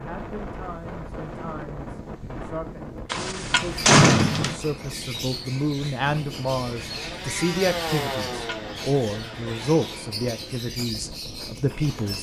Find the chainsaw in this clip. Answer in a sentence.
You can hear the chainsaw from 6.5 to 10.7 s.